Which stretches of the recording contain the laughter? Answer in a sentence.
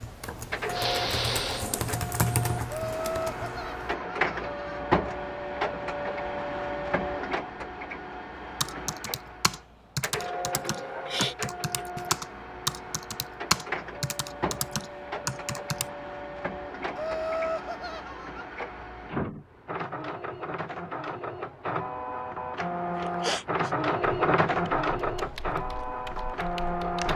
The laughter can be heard from 2.6 to 4.8 s and from 16.9 to 18.4 s.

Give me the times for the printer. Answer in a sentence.
The printer can be heard from 0.0 to 27.1 s.